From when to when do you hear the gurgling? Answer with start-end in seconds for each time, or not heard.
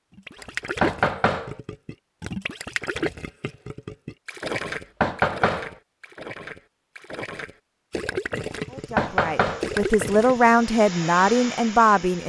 0.1-10.6.